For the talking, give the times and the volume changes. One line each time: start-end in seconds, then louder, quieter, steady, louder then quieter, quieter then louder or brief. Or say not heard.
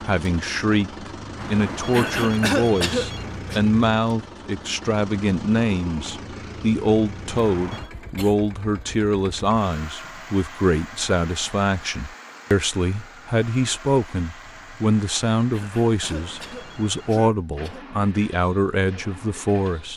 0.0-19.9 steady.